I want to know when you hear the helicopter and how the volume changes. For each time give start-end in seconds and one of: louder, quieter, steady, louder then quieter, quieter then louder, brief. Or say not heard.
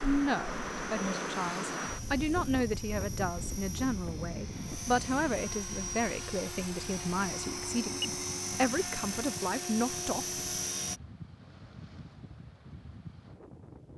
0.0-11.0 louder.